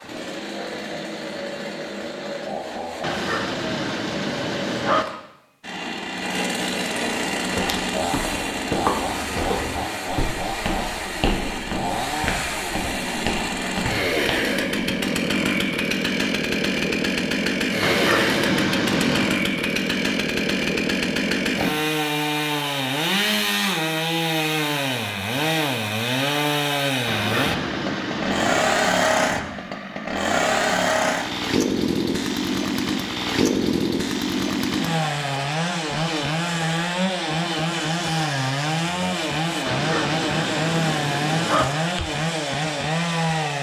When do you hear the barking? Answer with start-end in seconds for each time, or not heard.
3.0-5.0, 17.8-19.4, 27.1-28.7, 39.6-41.6.